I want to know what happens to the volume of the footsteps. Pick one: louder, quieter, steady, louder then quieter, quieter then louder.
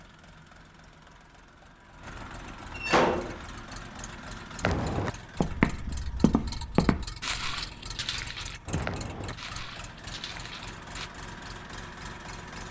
quieter.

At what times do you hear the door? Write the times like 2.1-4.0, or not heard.
2.8-3.4.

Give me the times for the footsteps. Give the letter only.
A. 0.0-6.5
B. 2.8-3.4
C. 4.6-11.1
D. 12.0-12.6
C.